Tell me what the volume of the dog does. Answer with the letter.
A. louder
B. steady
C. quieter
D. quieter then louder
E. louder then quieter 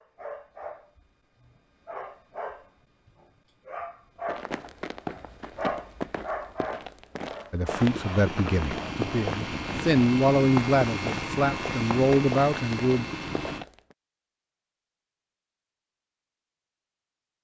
E.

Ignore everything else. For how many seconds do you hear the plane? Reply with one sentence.
You can hear the plane for 6 seconds altogether.